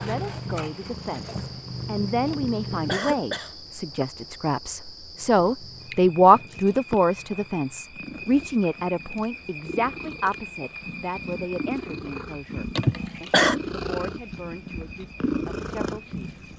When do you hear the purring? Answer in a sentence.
You can hear the purring from 0.0 to 3.2 s and from 5.2 to 16.5 s.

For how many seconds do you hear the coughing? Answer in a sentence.
You can hear the coughing for 2 seconds altogether.